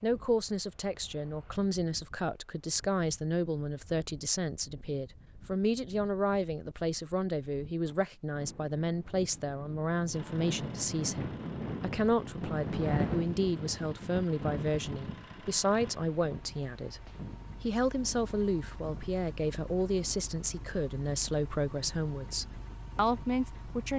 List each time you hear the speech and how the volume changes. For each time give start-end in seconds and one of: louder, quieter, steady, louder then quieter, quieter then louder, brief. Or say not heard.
0.0-23.9 steady.